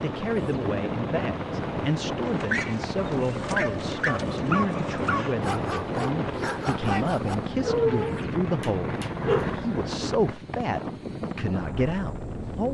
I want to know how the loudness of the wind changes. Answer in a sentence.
The volume of the wind stays about the same.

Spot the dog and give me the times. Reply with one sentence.
You can hear the dog from 2.2 to 9.6 s.